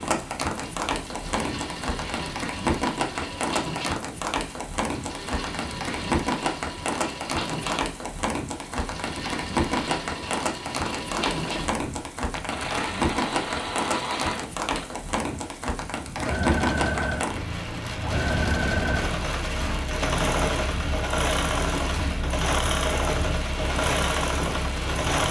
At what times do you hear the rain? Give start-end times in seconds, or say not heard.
0.0-25.2.